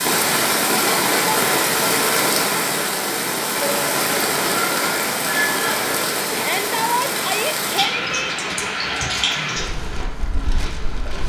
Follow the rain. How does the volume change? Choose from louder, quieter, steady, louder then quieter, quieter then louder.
quieter.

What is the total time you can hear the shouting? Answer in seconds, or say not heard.
2 s.